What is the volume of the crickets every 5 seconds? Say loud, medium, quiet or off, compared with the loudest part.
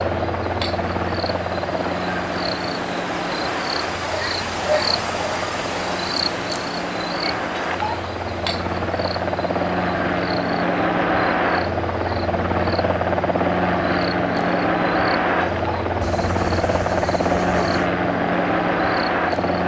loud, loud, medium, medium.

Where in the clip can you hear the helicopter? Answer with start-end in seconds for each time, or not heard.
0.0-19.6.